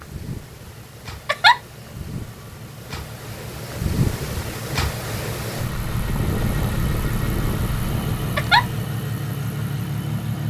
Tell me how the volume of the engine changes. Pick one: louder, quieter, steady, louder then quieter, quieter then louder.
louder.